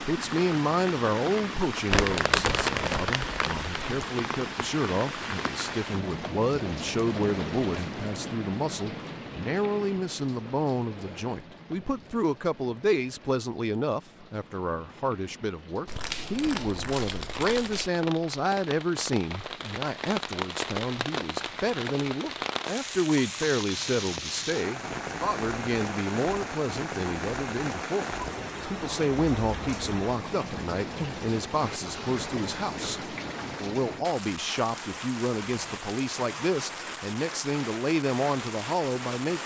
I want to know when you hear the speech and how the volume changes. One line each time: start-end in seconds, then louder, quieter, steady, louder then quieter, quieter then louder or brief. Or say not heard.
0.0-39.4 steady.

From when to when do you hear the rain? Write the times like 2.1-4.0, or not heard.
0.0-39.4.